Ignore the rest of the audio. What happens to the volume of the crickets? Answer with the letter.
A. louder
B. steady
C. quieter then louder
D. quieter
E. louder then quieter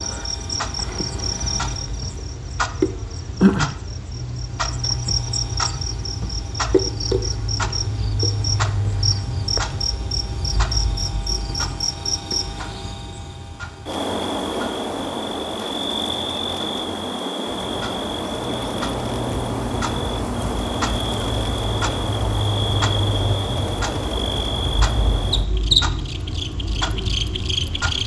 B.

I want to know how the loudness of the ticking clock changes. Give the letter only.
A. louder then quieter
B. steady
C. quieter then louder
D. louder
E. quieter
C.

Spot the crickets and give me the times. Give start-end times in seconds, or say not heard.
0.0-28.0.